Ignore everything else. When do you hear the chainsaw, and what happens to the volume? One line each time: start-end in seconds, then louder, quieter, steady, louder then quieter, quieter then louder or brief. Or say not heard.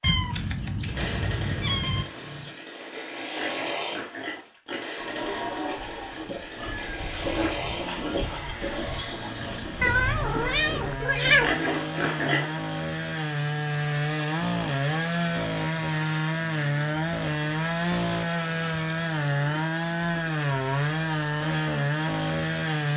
0.0-22.9 louder.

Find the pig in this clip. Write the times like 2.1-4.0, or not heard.
2.1-12.6.